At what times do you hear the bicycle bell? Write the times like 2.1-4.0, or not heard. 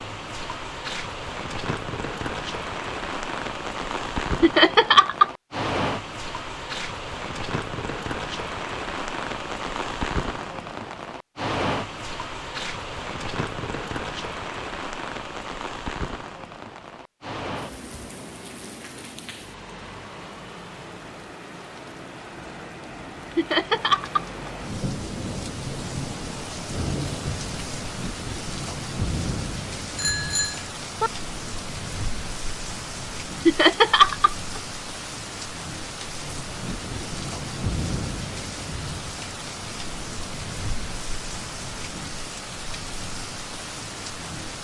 29.9-31.1.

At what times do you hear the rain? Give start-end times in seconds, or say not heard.
0.0-44.5.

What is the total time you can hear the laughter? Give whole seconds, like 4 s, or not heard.
3 s.